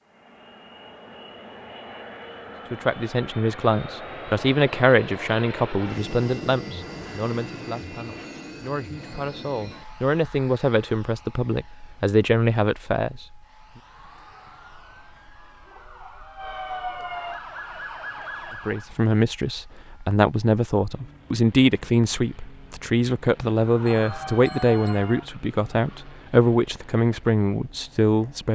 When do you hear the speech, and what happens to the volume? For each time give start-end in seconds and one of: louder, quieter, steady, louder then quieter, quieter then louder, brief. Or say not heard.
2.7-13.2 quieter then louder
18.6-28.4 steady.